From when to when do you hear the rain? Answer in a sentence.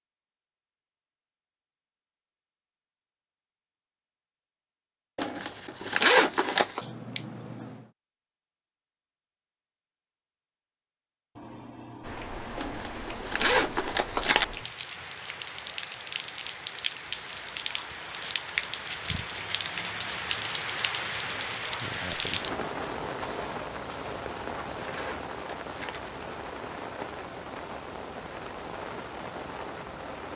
You can hear the rain from 12.0 to 30.3 s.